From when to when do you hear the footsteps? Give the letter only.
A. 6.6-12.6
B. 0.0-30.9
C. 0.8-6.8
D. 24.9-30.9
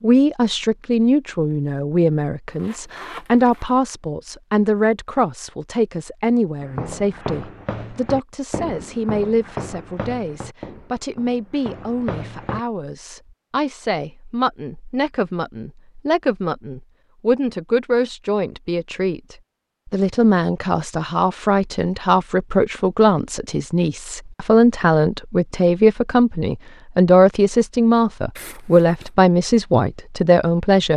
A.